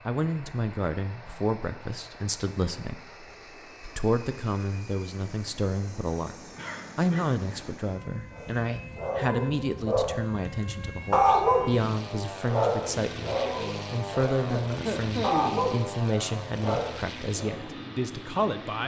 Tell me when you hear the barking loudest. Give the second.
11 s.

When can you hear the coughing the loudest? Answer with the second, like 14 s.
15 s.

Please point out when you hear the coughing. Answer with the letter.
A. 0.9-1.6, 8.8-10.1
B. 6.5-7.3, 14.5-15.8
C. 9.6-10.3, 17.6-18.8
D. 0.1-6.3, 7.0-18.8
B.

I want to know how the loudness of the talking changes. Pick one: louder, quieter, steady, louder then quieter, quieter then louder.
steady.